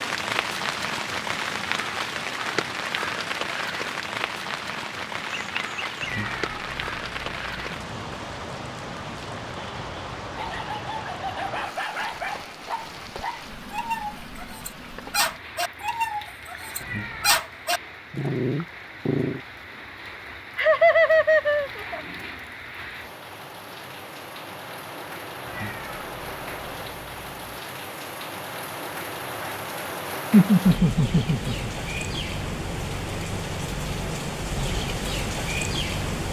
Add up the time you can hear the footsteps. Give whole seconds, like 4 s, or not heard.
not heard.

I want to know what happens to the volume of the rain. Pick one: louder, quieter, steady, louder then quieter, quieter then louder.
quieter then louder.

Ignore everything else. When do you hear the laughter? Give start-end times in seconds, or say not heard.
5.2-6.0, 20.6-22.0, 30.3-31.7.